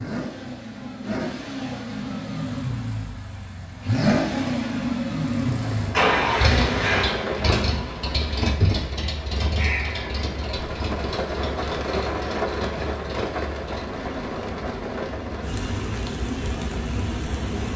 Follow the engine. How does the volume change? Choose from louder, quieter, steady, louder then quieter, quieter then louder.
louder then quieter.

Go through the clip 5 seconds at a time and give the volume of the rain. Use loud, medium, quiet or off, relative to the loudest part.
off, loud, loud, loud.